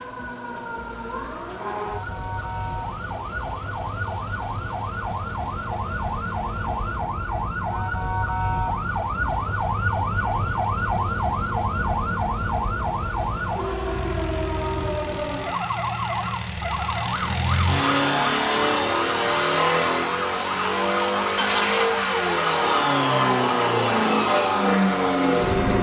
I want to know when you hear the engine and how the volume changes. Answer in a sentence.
You can hear the engine from 0.0 to 25.7 s, getting louder.